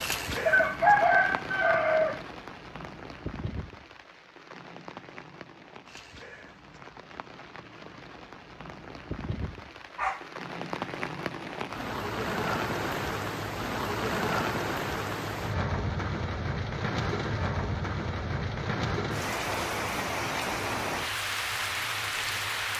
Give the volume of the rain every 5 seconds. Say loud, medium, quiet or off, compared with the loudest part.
medium, quiet, loud, loud, loud.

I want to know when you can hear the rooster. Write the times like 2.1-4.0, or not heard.
0.5-2.2.